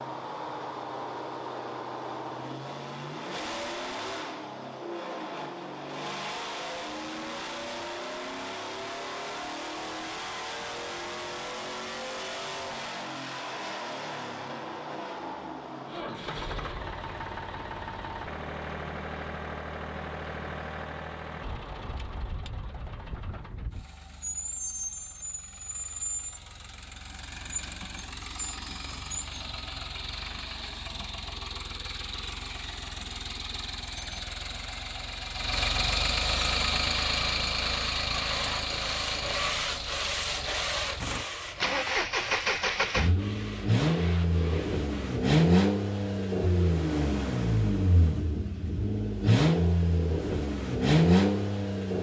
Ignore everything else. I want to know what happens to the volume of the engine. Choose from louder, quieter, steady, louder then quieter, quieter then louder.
louder.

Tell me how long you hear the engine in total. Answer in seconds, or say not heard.
52 s.